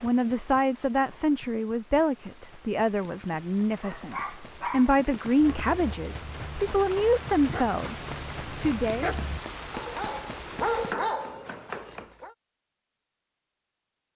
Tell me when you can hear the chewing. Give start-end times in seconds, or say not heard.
not heard.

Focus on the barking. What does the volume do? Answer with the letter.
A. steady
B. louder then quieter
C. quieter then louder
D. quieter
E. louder
C.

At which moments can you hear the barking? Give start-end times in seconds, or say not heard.
3.8-12.3.